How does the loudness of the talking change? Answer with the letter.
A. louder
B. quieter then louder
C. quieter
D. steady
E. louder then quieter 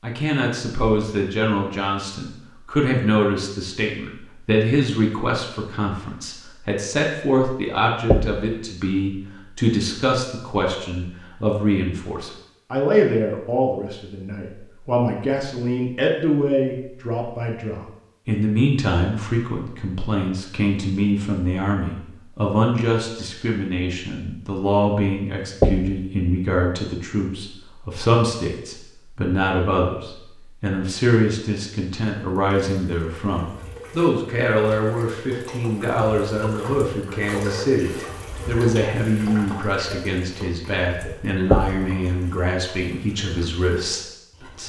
D.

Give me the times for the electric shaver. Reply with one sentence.
The electric shaver can't be heard in this clip.